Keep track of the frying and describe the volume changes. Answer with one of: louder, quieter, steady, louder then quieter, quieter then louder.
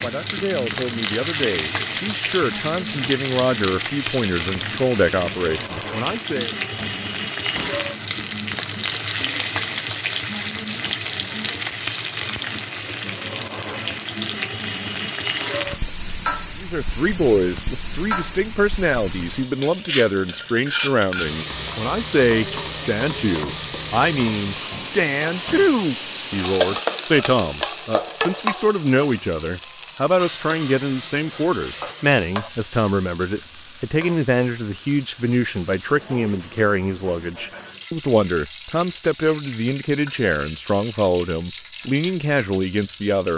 quieter.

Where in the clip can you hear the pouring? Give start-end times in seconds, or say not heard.
not heard.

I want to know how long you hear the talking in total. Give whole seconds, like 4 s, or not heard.
33 s.